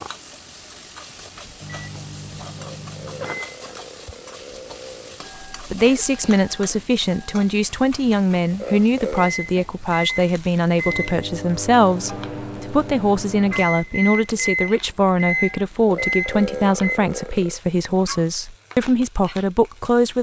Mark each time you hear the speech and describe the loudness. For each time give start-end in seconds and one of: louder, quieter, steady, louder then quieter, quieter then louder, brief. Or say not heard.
5.5-20.1 steady.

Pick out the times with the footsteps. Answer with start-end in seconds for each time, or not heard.
not heard.